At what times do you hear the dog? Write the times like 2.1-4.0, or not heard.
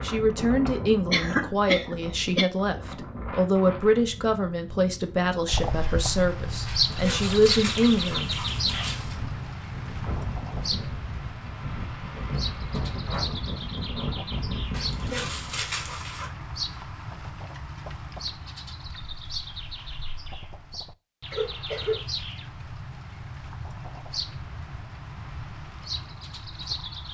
6.7-9.2, 14.7-16.3.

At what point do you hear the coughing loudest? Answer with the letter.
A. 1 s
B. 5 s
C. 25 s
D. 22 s
A.